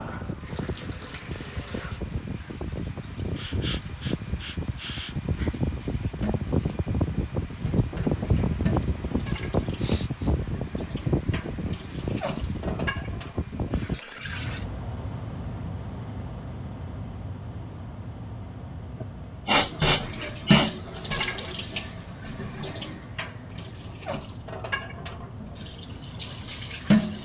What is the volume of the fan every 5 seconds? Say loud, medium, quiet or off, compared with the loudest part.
medium, loud, loud, medium, quiet, quiet.